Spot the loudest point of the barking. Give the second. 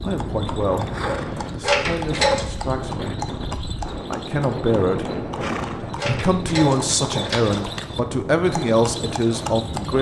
2 s.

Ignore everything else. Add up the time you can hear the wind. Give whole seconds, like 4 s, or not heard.
10 s.